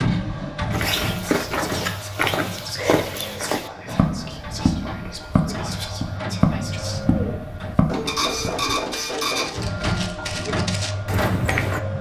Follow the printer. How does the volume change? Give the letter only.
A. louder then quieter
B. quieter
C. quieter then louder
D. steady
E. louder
C.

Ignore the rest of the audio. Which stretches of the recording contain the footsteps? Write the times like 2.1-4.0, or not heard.
0.7-11.8.